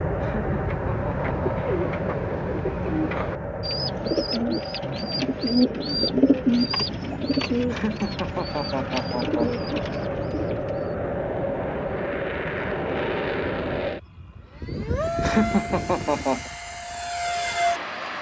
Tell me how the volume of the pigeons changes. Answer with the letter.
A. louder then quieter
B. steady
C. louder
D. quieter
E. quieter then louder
A.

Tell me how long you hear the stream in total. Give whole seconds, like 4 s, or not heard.
not heard.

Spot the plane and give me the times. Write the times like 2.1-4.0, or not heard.
0.0-18.1.